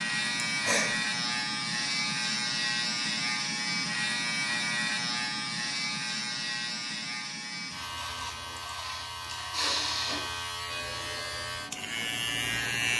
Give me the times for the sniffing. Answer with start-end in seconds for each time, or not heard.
0.3-0.8, 8.6-10.2.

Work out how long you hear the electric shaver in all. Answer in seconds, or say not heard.
13 s.